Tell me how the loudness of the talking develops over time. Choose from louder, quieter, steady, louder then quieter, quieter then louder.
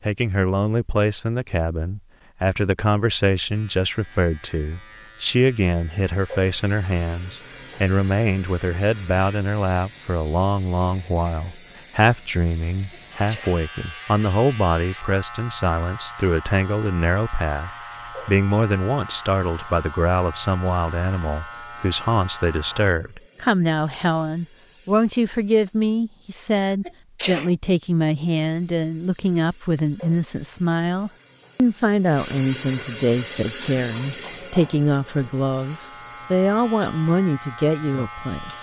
steady.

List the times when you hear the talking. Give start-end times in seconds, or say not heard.
0.0-38.5.